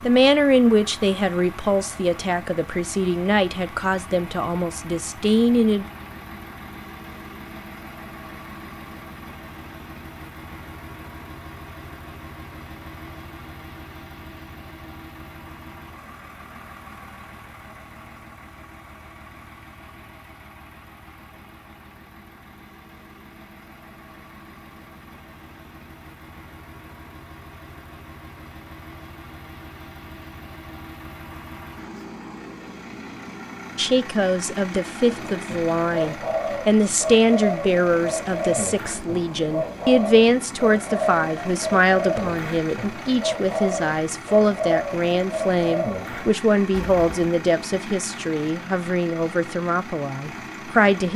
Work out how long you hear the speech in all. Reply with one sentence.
The speech can be heard for 23 seconds in total.